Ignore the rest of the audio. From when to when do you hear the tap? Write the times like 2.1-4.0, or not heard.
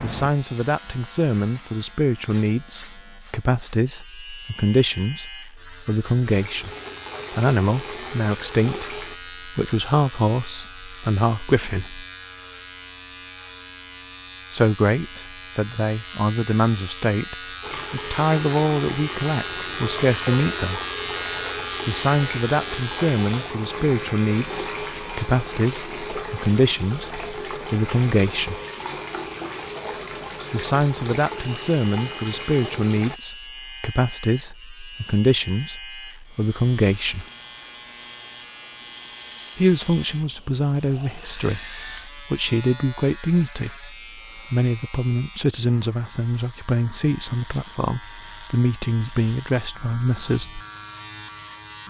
6.2-9.2, 17.6-33.2.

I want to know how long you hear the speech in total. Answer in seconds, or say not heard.
43 s.